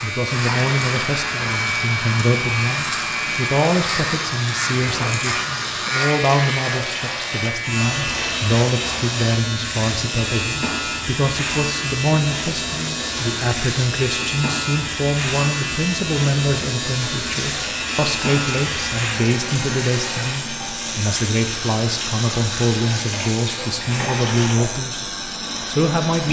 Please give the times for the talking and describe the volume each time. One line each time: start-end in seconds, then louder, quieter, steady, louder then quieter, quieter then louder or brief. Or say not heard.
0.0-26.2 steady.